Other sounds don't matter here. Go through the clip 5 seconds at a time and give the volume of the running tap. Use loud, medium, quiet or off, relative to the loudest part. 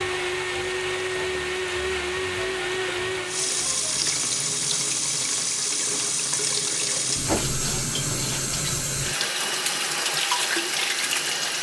medium, loud, loud.